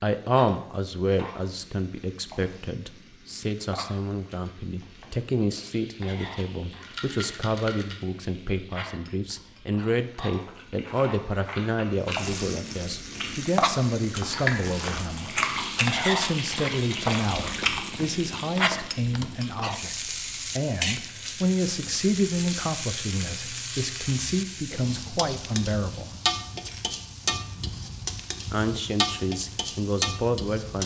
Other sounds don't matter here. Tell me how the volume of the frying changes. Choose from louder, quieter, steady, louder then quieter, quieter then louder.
louder.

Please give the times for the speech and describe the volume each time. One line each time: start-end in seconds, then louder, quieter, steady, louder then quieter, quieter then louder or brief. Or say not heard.
0.0-26.1 steady
28.5-30.8 brief.